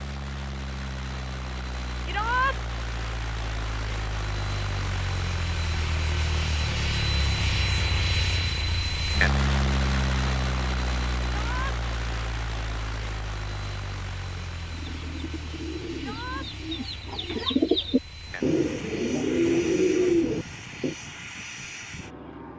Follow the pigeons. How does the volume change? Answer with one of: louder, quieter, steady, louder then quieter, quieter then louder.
louder.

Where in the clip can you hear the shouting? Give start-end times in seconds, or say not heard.
2.0-2.5, 11.3-11.8, 15.9-16.5.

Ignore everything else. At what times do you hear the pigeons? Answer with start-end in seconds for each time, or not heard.
14.5-20.9.